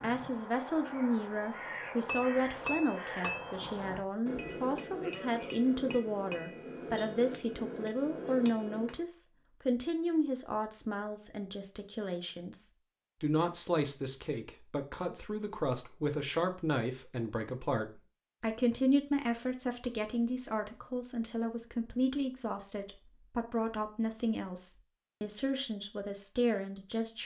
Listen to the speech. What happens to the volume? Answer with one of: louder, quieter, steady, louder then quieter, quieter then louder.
steady.